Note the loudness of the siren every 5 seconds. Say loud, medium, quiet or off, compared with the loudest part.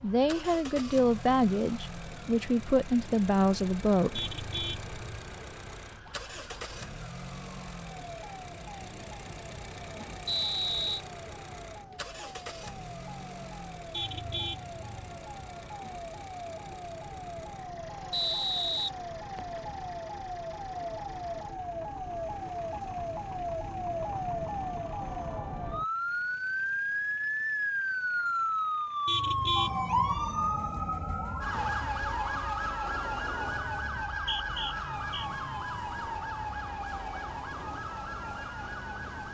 quiet, quiet, quiet, medium, medium, loud, loud, medium.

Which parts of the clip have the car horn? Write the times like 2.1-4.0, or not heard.
4.2-5.0, 13.9-14.8, 29.1-30.2.